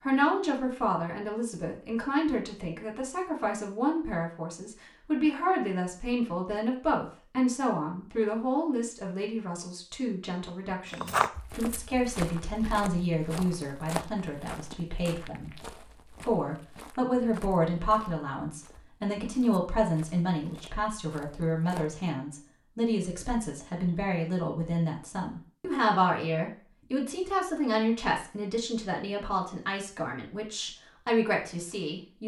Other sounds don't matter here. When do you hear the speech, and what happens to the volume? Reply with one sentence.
You can hear the speech from 0.1 to 32.2 s, at a steady volume.